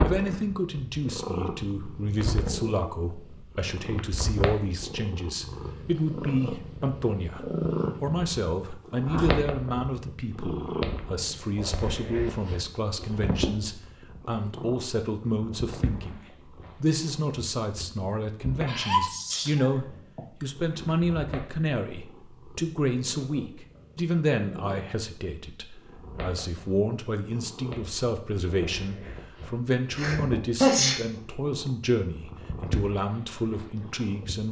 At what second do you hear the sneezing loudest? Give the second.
31 s.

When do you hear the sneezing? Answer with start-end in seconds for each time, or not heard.
8.9-9.3, 18.6-20.4, 29.9-31.0.